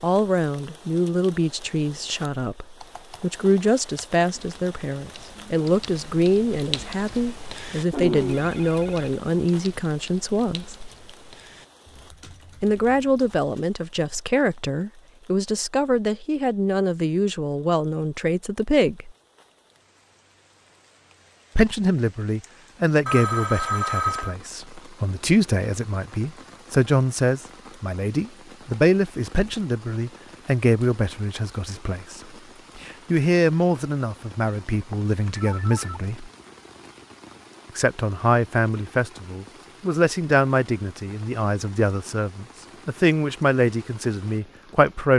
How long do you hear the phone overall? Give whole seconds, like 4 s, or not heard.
4 s.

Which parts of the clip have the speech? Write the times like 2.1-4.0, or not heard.
0.0-10.9, 12.6-19.1, 21.6-36.3, 37.8-45.1.